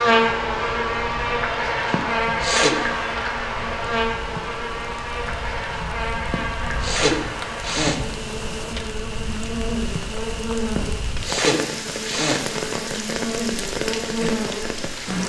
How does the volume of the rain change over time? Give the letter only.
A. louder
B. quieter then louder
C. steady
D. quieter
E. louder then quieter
A.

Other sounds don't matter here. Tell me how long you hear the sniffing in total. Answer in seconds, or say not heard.
4 s.